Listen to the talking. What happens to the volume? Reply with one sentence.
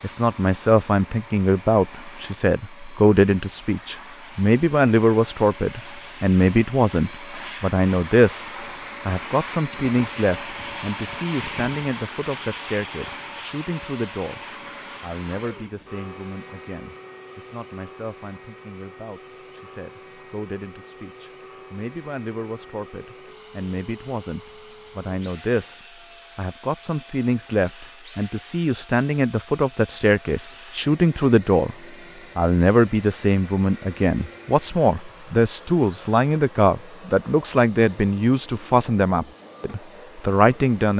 The loudness of the talking goes down, then up.